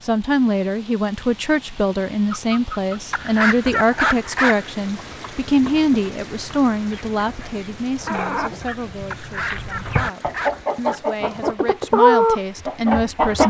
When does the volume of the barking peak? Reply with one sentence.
The loudest moment of the barking is at 4 seconds.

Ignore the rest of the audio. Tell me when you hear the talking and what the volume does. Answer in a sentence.
You can hear the talking from 0.0 to 13.4 s, getting quieter then louder.